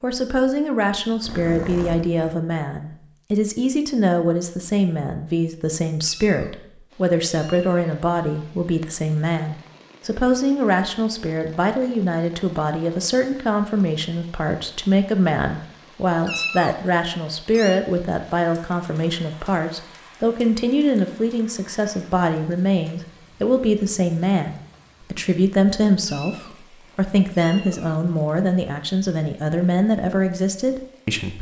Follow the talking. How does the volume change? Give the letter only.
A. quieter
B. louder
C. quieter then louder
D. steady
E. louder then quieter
D.